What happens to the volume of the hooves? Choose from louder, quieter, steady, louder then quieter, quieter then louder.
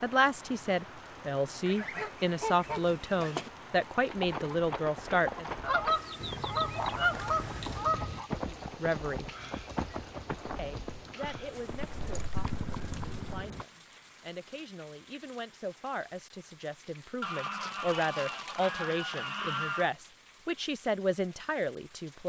steady.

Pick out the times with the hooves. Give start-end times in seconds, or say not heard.
4.0-13.7.